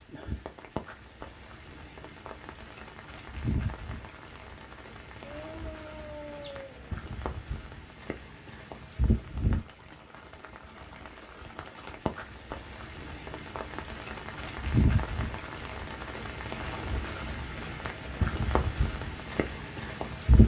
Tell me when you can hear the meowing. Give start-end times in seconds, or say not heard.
5.2-6.9.